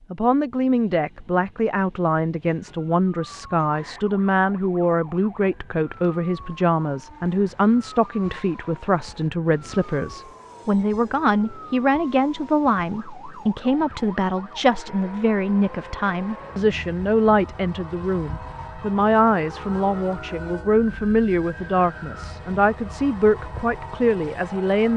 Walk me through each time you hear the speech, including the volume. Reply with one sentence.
The speech can be heard from 0.1 to 24.9 s, at a steady volume.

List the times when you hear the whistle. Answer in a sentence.
You can't hear the whistle here.